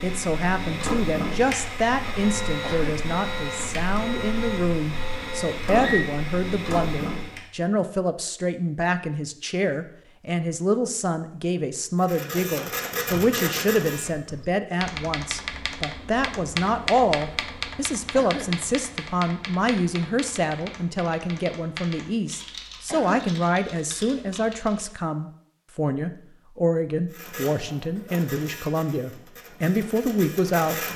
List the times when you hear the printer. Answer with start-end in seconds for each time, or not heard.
0.0-7.5, 12.0-14.1, 27.1-30.9.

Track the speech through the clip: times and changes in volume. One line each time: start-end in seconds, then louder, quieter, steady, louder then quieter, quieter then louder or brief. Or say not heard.
0.0-30.8 steady.